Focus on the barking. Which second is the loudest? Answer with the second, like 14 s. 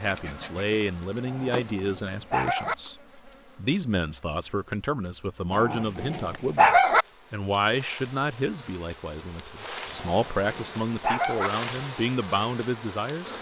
7 s.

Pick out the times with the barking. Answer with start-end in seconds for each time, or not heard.
1.2-2.8, 5.5-7.0, 9.9-11.5.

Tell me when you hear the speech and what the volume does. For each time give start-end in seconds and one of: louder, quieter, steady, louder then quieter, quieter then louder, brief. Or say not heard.
0.0-13.3 steady.